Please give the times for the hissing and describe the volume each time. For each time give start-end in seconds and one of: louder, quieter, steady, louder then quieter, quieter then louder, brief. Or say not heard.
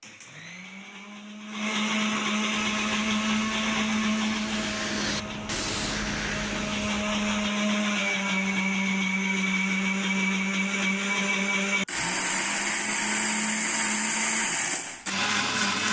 2.5-7.3 louder.